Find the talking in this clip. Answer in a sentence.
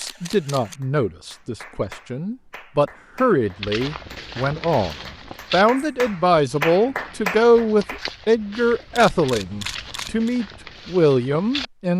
You can hear the talking from 0.0 to 11.9 s.